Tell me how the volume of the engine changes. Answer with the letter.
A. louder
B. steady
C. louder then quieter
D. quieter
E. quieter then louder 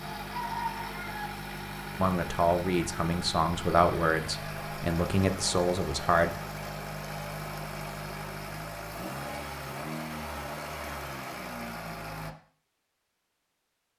B.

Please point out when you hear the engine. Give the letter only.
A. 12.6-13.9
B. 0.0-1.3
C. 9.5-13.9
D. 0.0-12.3
D.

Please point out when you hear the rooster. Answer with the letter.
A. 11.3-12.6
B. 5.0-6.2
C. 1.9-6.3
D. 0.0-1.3
D.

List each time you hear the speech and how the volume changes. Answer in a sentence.
The speech can be heard from 1.9 to 6.3 s, at a steady volume.